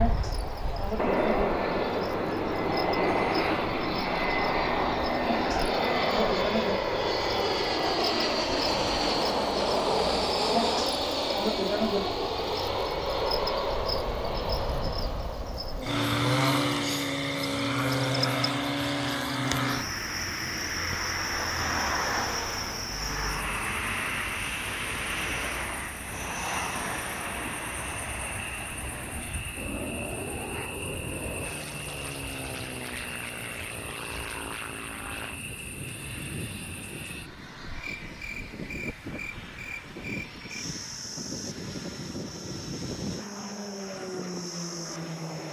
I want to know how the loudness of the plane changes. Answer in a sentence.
The volume of the plane goes down.